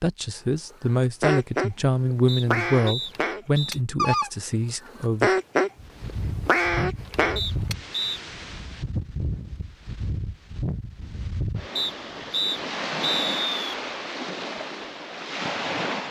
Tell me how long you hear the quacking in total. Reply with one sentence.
You can hear the quacking for 7 seconds altogether.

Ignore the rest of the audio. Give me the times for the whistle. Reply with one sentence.
The whistle can be heard from 2.2 to 3.8 s, from 7.3 to 8.2 s and from 11.8 to 13.8 s.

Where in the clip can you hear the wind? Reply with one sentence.
You can hear the wind from 5.8 to 16.0 s.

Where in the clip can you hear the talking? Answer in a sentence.
The talking can be heard from 0.0 to 5.3 s.